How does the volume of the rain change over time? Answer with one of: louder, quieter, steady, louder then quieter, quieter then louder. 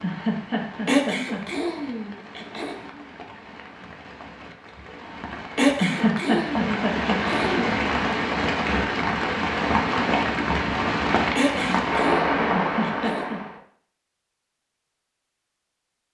louder.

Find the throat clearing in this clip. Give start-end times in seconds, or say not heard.
0.8-2.8, 5.5-7.8, 11.3-13.3.